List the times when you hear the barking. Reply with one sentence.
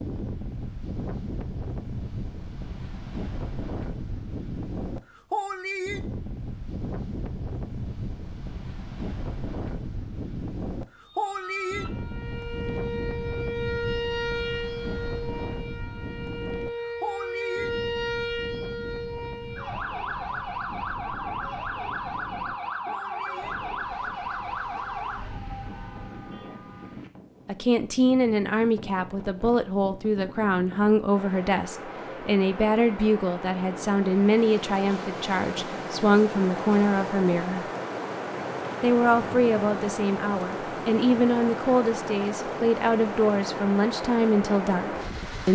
The barking can't be heard in this clip.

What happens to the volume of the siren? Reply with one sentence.
The loudness of the siren stays about the same.